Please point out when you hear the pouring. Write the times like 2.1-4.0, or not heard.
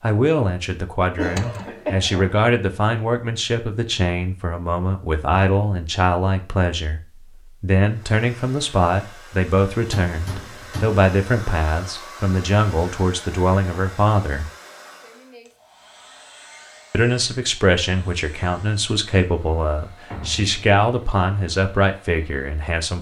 not heard.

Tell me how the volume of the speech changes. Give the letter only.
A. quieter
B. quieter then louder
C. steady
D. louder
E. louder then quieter
C.